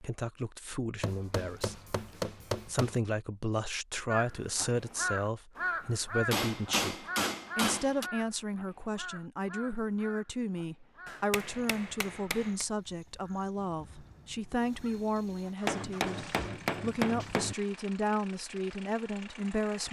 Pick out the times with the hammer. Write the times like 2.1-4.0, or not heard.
1.0-3.0, 6.3-8.1, 11.1-12.7, 15.7-17.6.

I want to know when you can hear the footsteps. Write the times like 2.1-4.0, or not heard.
not heard.